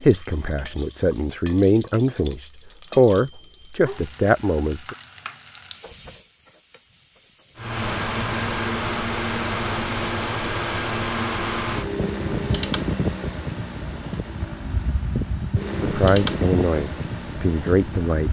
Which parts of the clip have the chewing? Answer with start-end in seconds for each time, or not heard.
not heard.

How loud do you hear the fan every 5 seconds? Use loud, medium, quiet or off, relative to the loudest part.
off, loud, loud, loud.